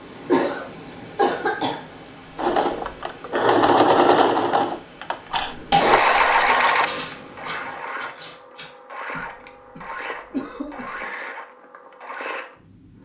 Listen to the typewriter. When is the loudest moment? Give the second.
7 s.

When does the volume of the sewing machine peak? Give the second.
4 s.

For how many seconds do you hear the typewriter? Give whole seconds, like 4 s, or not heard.
2 s.